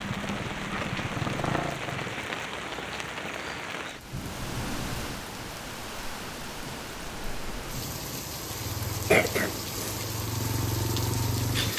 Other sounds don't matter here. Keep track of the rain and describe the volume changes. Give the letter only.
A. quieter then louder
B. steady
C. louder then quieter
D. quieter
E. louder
B.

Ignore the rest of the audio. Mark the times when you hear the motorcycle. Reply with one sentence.
The motorcycle can be heard from 0.0 to 2.2 s and from 8.4 to 11.7 s.